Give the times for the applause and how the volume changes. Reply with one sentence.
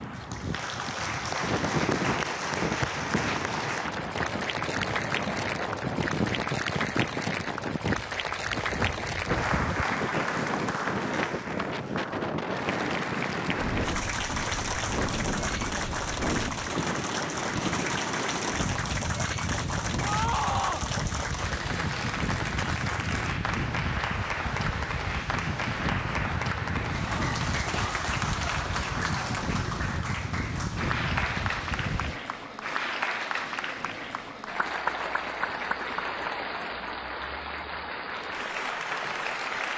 You can hear the applause from 0.0 to 39.7 s, at a steady volume.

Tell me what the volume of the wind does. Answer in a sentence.
The volume of the wind stays about the same.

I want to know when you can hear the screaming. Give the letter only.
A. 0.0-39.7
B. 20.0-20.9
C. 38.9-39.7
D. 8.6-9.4
B.